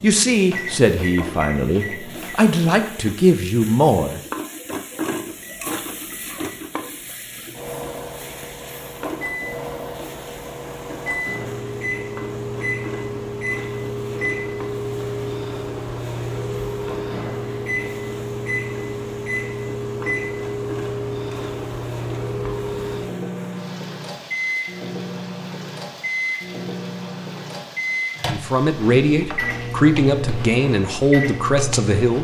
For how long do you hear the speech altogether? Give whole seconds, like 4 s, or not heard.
8 s.